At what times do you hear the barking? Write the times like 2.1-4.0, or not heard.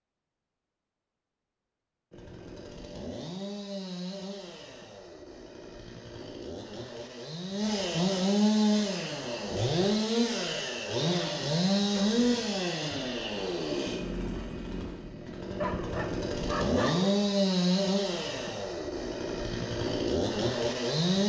15.6-17.1.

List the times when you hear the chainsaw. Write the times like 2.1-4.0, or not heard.
2.1-21.2.